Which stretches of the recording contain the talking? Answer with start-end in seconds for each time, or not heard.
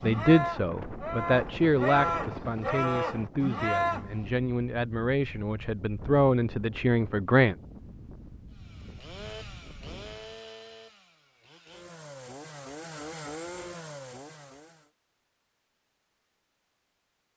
0.0-7.5.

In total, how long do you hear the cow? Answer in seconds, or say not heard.
4 s.